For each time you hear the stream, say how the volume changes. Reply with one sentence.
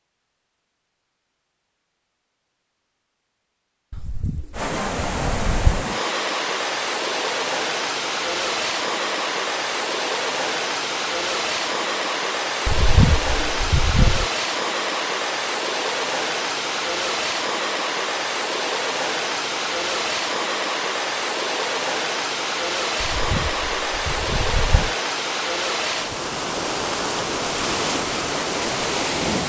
The stream can be heard from 4.5 to 29.4 s, at a steady volume.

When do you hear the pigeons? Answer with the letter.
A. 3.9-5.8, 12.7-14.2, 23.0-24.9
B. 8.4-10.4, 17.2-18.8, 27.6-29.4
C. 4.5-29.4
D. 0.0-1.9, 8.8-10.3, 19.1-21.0
A.